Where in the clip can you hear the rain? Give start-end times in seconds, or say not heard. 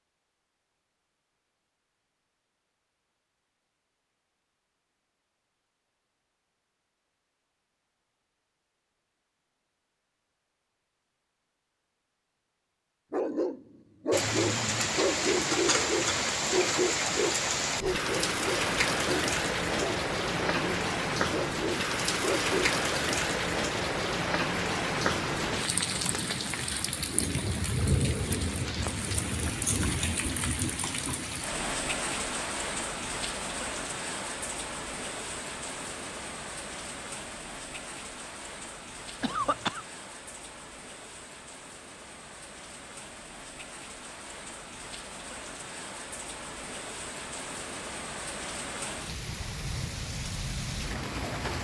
14.1-51.5.